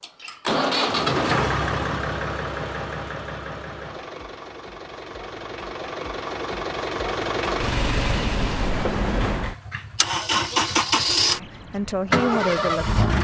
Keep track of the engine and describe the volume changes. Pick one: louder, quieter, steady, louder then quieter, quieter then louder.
quieter then louder.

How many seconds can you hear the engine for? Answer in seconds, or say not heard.
13 s.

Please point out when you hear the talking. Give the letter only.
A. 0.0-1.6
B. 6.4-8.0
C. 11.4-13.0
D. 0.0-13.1
C.